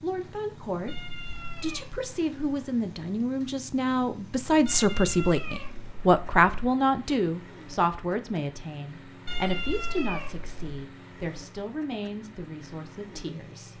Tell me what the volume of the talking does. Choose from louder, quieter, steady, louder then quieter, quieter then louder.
louder then quieter.